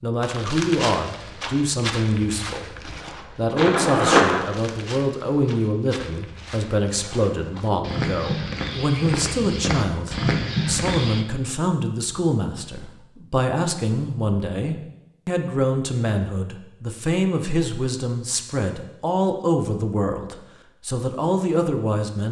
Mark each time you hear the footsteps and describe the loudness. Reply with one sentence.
You can hear the footsteps from 0.2 to 11.2 s, getting quieter then louder.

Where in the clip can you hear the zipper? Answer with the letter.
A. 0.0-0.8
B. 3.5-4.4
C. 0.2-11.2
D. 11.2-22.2
B.